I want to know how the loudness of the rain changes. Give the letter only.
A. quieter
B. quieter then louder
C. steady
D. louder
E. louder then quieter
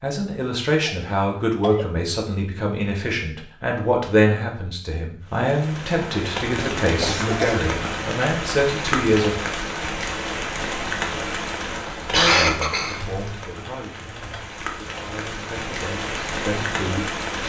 B.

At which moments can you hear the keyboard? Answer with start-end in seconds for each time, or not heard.
12.9-14.6.